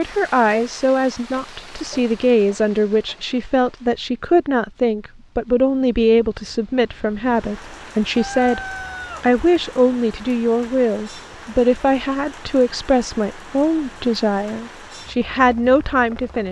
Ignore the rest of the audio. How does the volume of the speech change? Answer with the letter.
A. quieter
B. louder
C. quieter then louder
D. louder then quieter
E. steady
E.